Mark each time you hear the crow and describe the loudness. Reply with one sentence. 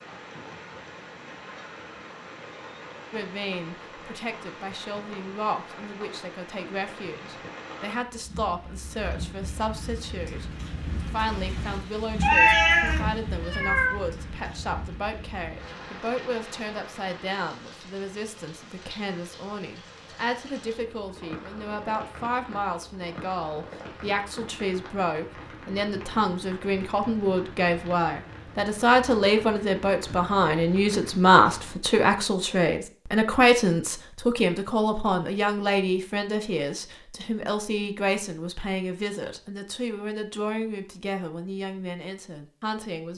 The crow can't be heard in this clip.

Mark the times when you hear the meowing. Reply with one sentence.
The meowing can be heard from 12.2 to 13.9 s.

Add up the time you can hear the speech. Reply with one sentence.
You can hear the speech for 40 seconds altogether.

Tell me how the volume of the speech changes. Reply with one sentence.
The loudness of the speech goes up, then down.